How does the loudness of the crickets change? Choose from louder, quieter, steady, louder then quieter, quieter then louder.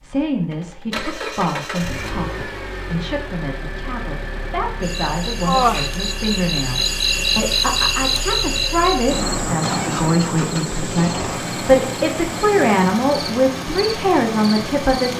quieter.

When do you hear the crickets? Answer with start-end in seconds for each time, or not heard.
4.8-15.1.